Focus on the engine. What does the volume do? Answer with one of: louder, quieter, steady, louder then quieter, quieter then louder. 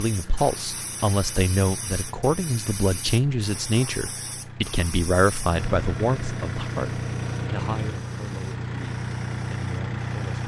louder.